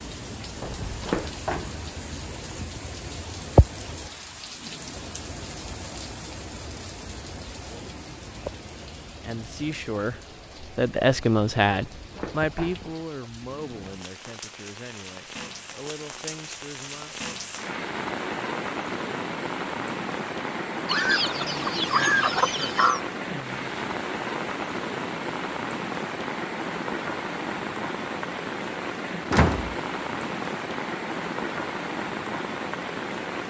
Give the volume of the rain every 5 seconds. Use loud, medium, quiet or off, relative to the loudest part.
loud, medium, quiet, loud, loud, loud, loud.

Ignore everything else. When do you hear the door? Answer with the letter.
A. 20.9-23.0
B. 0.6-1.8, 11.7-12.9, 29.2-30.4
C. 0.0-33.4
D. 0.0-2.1
B.